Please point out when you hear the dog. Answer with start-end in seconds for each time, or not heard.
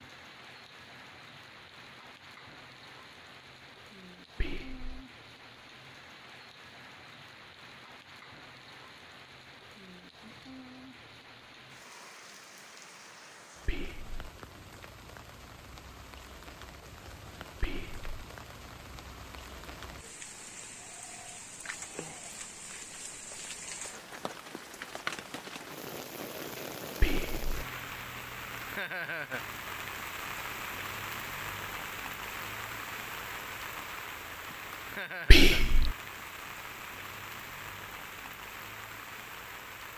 not heard.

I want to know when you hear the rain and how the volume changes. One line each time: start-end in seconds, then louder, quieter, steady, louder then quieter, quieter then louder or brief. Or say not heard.
0.0-39.9 louder.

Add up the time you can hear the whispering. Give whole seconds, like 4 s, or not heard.
3 s.